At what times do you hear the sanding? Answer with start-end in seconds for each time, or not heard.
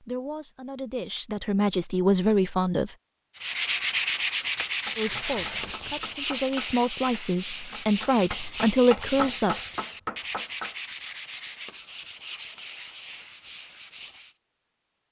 3.4-14.3.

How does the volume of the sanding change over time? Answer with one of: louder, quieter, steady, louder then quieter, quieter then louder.
quieter.